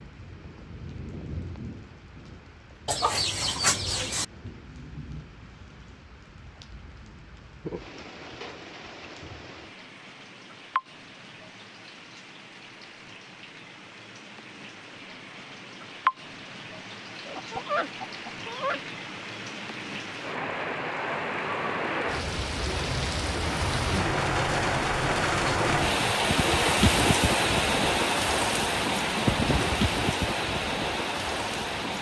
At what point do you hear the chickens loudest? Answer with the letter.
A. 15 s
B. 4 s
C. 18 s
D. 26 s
B.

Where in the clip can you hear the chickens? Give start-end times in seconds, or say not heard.
2.9-4.2, 17.2-18.8.